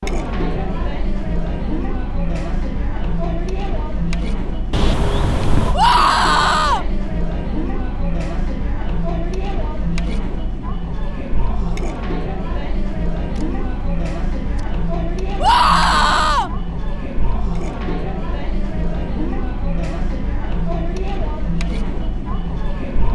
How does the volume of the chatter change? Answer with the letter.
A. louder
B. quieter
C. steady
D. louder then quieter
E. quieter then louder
C.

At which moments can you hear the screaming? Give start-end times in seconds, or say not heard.
5.7-6.8, 15.4-16.5.